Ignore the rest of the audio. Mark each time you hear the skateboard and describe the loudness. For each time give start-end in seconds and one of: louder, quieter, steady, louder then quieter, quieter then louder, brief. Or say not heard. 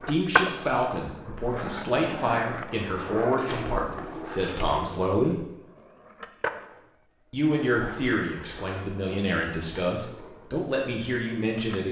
0.0-11.8 quieter.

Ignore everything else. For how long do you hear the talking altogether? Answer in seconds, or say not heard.
10 s.